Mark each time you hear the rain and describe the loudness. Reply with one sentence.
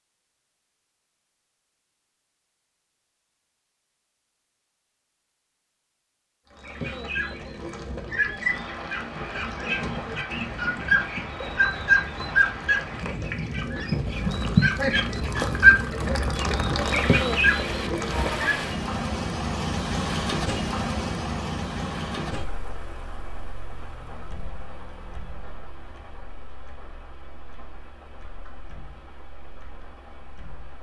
You can hear the rain from 8.4 to 30.7 s, getting louder then quieter.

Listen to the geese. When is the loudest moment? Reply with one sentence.
The volume of the geese peaks at 16 seconds.